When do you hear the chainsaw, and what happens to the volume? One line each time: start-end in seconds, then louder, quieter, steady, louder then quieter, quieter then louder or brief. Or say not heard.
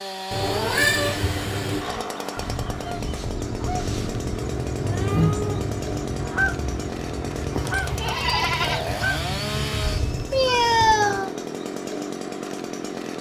0.0-13.1 steady.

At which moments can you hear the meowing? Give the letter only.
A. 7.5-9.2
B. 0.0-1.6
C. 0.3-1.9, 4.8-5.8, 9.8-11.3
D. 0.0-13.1
C.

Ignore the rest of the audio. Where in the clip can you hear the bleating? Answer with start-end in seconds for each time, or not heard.
7.5-9.2.